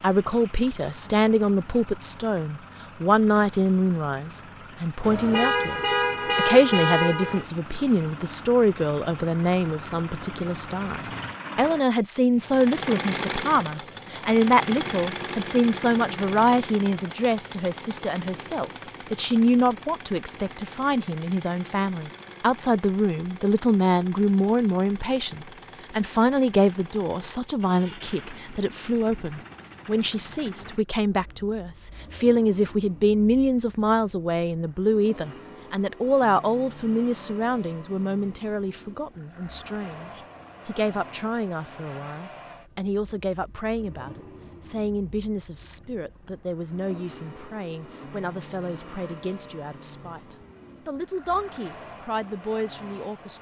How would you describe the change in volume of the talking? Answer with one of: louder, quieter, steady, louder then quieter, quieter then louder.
quieter.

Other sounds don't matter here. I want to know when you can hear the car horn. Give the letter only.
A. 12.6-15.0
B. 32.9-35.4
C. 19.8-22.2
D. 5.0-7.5
D.